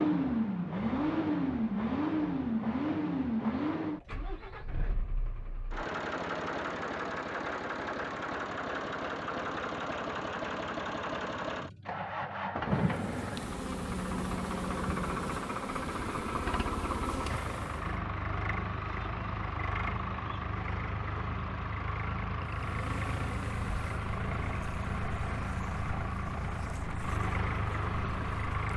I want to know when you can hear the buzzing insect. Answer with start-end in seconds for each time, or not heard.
12.7-18.0, 22.4-28.7.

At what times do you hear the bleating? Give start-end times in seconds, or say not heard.
not heard.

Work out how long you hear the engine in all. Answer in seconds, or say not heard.
29 s.